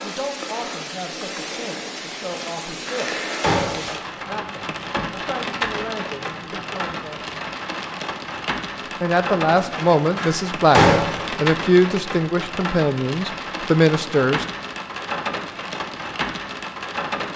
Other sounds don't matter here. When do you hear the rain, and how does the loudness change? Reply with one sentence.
You can hear the rain from 0.0 to 17.3 s, at a steady volume.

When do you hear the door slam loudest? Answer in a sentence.
The loudest moment of the door slam is at 11 seconds.